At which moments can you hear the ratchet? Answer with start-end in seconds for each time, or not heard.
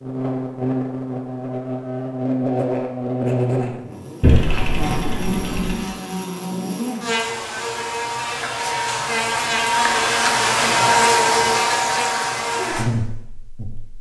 4.2-5.8.